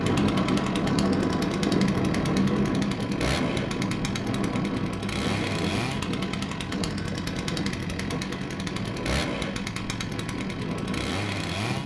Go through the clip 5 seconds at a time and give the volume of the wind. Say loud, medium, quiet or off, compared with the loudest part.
loud, medium, medium.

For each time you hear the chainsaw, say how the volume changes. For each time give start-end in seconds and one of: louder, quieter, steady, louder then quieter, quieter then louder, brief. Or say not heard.
0.0-11.8 steady.